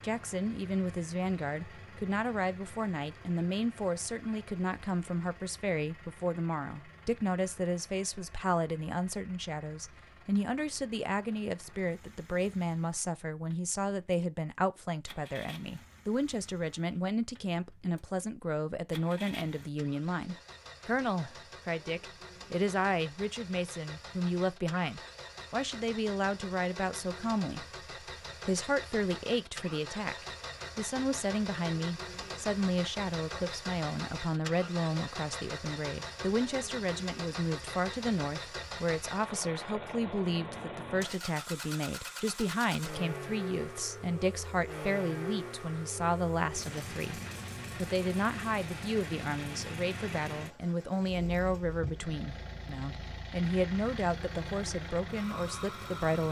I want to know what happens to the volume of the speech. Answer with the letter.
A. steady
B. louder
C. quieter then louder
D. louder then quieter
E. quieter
A.